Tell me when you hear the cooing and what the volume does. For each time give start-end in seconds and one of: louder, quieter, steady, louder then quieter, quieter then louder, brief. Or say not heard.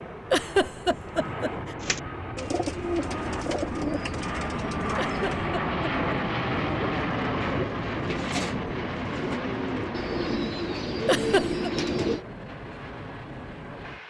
1.8-12.2 quieter then louder.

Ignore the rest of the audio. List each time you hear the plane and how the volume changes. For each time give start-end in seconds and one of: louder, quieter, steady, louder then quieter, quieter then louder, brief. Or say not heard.
0.0-14.0 louder then quieter.